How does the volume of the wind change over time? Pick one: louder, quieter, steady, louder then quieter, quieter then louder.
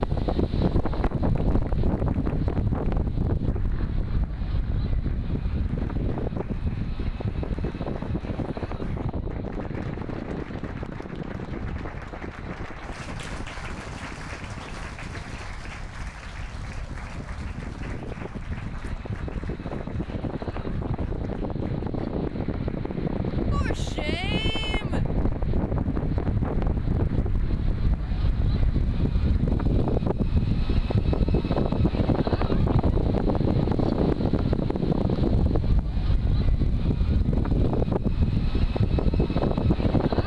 quieter then louder.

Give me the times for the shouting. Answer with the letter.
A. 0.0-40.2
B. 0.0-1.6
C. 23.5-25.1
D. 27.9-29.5
C.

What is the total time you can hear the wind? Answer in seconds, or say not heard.
40 s.